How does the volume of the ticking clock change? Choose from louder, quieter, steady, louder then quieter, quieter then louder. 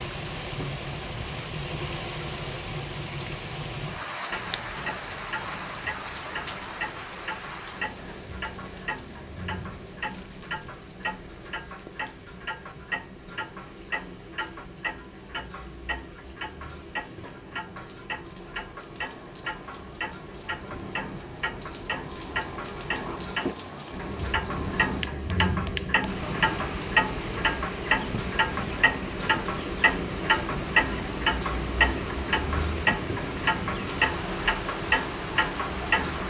louder.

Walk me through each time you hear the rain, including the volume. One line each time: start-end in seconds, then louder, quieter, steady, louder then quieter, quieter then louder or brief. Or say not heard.
0.0-36.2 quieter then louder.